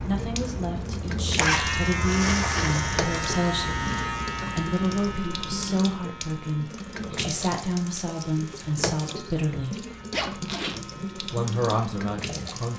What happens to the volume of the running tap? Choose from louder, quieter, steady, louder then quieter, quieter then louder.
steady.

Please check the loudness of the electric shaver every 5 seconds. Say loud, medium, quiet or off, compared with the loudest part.
loud, quiet, quiet.